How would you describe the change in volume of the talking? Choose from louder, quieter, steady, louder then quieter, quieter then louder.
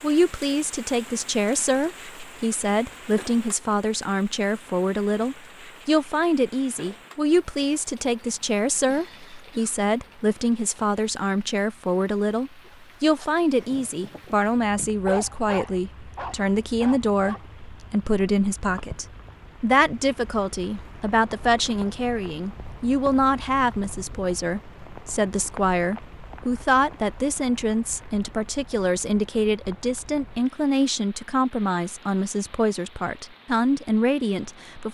steady.